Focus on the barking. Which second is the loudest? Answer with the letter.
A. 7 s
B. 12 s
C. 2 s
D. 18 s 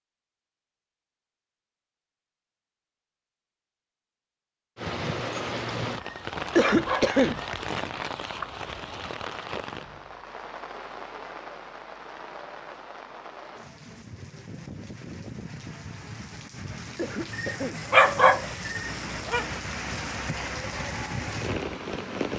D.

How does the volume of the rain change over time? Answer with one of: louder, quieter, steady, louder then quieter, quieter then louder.
quieter then louder.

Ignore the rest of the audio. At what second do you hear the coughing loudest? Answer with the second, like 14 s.
7 s.